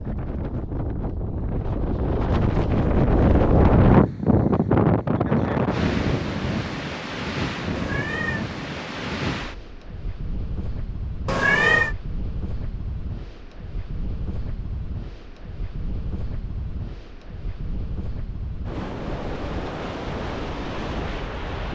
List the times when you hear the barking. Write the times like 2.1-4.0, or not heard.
not heard.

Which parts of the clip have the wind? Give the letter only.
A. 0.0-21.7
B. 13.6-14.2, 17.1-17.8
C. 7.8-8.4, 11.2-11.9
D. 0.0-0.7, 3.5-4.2
A.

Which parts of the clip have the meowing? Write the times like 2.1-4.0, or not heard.
7.8-8.4, 11.2-11.9.